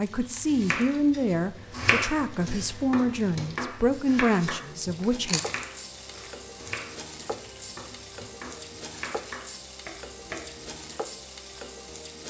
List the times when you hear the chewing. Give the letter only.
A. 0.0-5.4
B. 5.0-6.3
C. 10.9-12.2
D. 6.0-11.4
B.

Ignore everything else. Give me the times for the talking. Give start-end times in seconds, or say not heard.
0.0-5.4.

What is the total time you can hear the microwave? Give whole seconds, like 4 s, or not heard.
not heard.